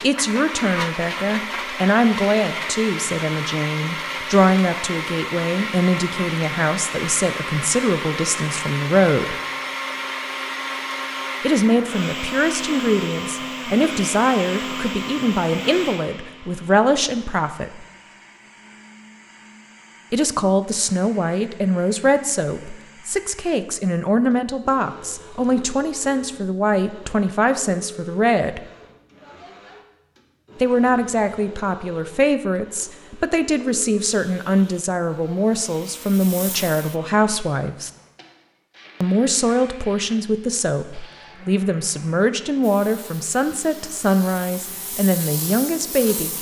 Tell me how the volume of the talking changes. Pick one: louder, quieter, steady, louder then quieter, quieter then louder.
steady.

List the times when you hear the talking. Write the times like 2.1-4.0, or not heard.
0.0-9.3, 11.4-17.9, 20.1-28.6, 30.6-37.9, 39.0-46.3.